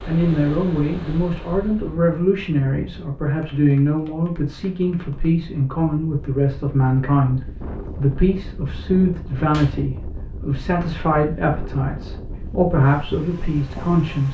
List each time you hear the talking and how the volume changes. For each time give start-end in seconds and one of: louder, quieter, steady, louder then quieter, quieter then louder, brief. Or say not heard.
0.1-14.2 steady.